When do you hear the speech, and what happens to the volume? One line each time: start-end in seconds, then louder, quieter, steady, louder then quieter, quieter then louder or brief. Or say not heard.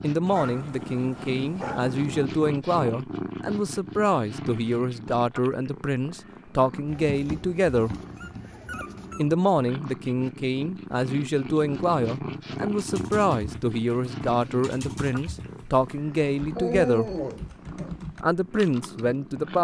0.0-8.0 steady
9.2-17.1 steady
18.2-19.5 brief.